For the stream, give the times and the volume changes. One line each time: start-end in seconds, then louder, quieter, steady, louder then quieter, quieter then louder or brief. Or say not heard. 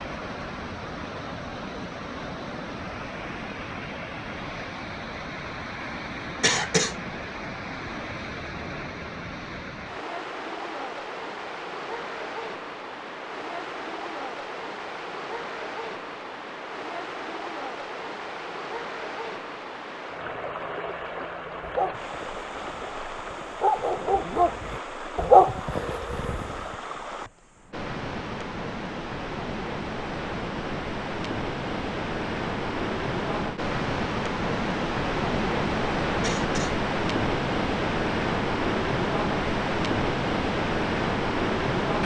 0.0-42.0 louder.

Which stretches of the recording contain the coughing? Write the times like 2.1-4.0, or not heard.
6.4-7.0, 36.2-36.8.